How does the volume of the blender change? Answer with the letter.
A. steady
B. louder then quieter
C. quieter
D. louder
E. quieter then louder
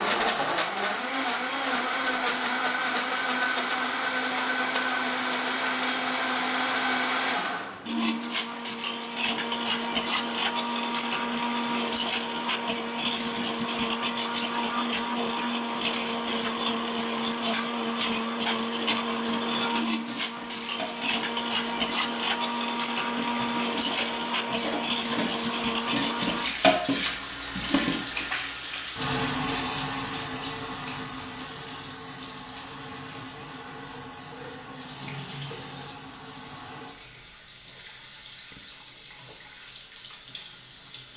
A.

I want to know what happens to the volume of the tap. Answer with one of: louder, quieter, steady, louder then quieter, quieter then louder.
louder then quieter.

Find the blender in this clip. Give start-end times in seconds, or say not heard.
0.0-26.5.